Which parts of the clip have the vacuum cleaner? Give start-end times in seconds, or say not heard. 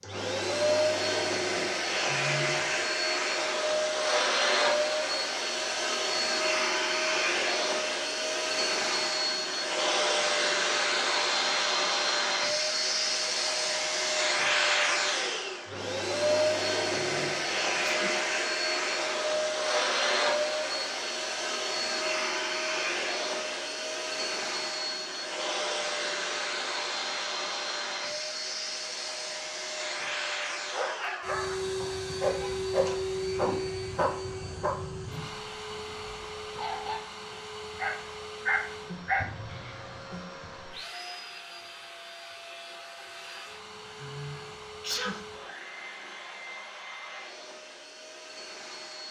0.0-49.0.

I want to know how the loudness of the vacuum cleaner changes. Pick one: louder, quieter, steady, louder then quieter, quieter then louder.
quieter.